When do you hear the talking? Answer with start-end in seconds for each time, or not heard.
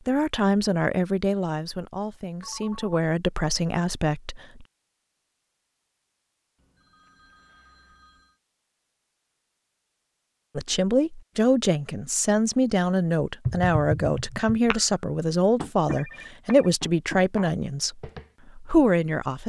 0.1-4.7, 10.6-19.4.